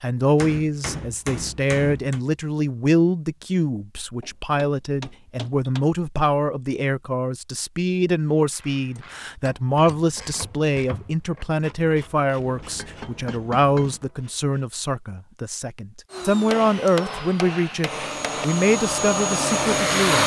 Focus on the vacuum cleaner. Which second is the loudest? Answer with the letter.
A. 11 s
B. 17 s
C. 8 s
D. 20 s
D.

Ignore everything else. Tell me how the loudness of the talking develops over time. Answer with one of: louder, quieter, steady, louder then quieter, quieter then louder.
steady.